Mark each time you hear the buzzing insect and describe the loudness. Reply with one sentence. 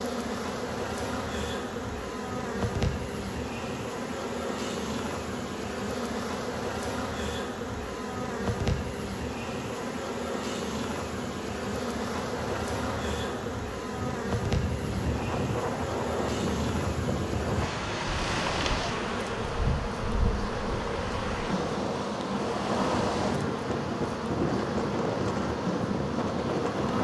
The buzzing insect can be heard from 0.0 to 26.9 s, at a steady volume.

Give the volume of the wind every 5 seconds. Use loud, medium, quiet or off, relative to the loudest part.
medium, medium, medium, loud, loud, loud.